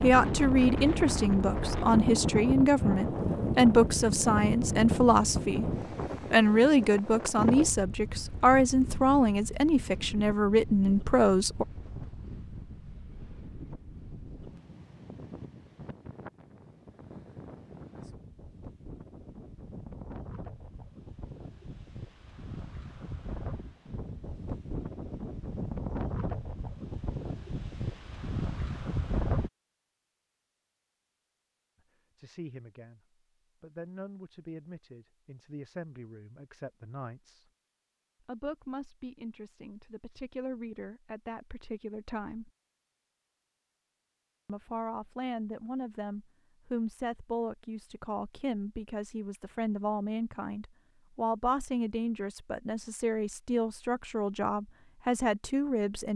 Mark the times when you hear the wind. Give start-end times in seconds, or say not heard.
0.0-29.5.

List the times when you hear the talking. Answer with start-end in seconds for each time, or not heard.
0.0-5.7, 6.3-11.7, 32.1-33.0, 33.6-37.5, 38.2-42.5, 44.5-56.1.